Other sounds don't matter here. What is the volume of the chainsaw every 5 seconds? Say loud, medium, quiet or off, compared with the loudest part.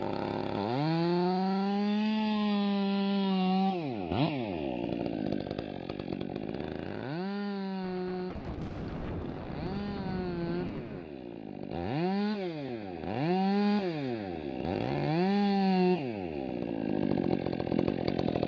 loud, medium, loud, loud.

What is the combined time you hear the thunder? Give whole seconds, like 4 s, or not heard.
3 s.